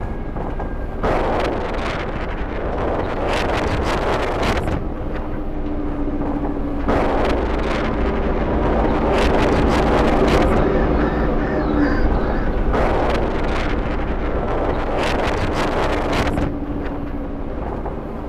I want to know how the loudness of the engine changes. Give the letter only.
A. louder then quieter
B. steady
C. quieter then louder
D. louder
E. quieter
A.